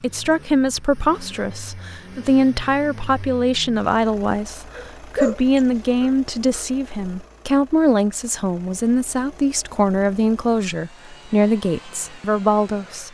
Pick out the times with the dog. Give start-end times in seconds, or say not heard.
4.7-6.7.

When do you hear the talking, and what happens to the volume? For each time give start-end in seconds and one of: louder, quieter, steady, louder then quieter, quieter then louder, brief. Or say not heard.
0.0-13.1 steady.